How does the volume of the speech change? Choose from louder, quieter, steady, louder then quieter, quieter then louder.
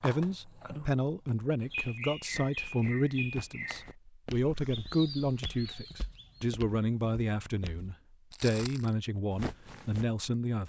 steady.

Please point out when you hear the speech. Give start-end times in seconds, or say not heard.
0.0-10.6.